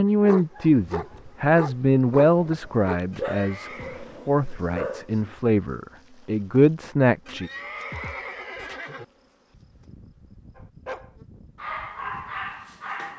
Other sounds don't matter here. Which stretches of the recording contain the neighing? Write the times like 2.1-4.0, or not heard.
3.1-4.0, 7.2-9.1.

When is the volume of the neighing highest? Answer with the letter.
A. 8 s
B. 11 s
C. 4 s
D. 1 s
A.